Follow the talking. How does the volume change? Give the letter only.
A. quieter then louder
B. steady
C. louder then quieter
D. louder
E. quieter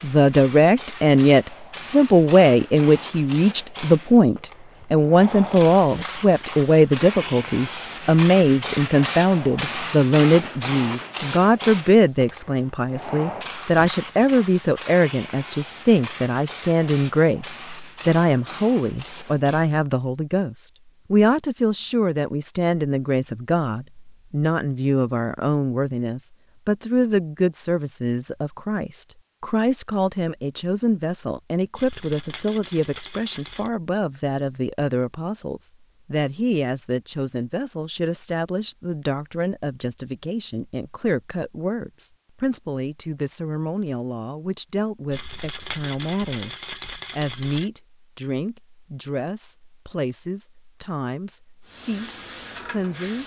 E.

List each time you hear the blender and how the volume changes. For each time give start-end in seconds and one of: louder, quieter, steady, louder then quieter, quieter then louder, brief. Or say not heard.
not heard.